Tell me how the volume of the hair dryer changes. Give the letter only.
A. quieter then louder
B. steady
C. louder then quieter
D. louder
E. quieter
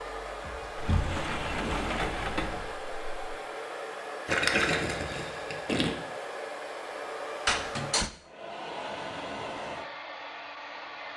B.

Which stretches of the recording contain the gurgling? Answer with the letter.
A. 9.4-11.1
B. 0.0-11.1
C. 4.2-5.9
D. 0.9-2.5
C.